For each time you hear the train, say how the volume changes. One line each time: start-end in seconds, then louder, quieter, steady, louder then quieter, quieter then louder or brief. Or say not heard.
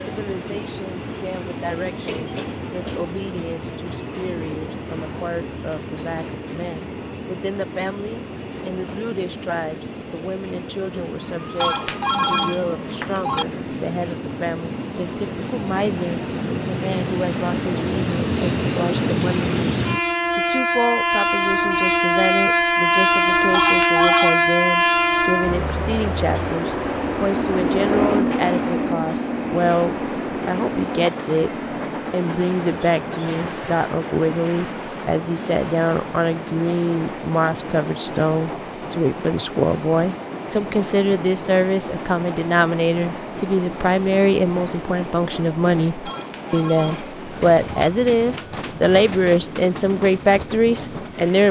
0.0-51.4 louder then quieter.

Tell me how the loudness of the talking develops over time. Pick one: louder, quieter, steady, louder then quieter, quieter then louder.
louder.